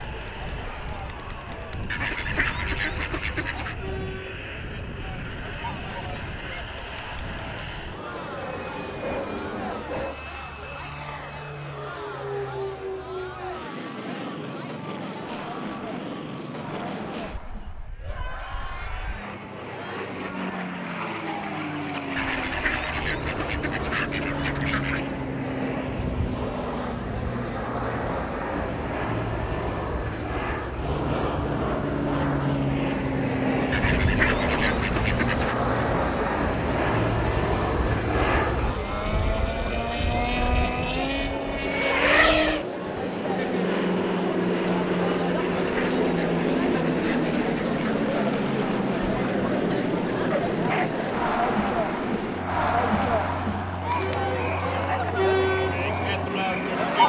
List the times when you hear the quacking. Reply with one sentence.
The quacking can be heard from 1.9 to 3.8 s, from 22.1 to 25.1 s, from 33.7 to 35.5 s and from 45.2 to 48.0 s.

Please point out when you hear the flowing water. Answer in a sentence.
The flowing water can't be heard in this clip.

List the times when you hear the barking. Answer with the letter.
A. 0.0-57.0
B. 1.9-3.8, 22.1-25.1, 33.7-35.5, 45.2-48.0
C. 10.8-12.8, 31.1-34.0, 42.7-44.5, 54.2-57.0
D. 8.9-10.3
D.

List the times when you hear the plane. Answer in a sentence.
The plane can be heard from 0.0 to 57.0 s.